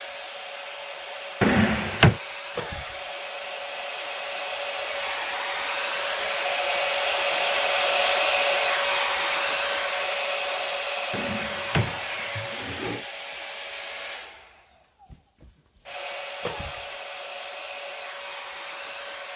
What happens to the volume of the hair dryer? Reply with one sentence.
The volume of the hair dryer goes up, then down.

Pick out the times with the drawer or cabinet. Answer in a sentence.
You can hear the drawer or cabinet from 1.4 to 2.2 s and from 11.1 to 13.1 s.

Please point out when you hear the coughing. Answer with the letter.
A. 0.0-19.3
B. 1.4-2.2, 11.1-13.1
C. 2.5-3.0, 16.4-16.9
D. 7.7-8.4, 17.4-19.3
C.